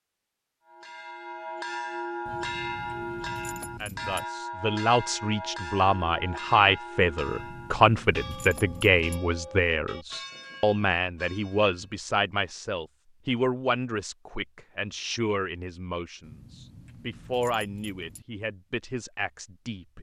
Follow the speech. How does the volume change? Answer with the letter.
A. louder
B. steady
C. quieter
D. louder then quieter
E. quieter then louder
C.